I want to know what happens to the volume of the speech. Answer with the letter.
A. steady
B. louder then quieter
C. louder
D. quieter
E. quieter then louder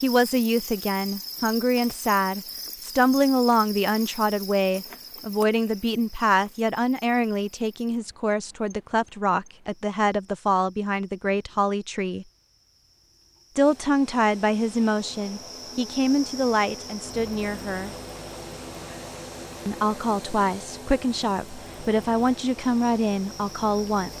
A.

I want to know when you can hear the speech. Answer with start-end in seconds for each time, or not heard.
0.0-12.2, 13.6-17.9, 19.6-24.1.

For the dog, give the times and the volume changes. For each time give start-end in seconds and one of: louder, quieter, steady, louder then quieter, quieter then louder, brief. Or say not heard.
not heard.